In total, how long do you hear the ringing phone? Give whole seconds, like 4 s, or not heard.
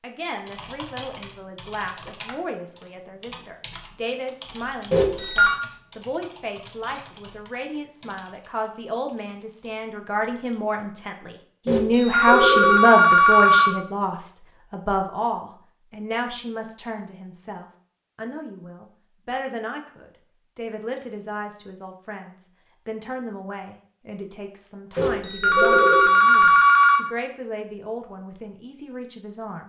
5 s.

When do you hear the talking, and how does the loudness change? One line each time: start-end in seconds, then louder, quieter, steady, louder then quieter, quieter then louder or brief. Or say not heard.
0.0-29.6 louder then quieter.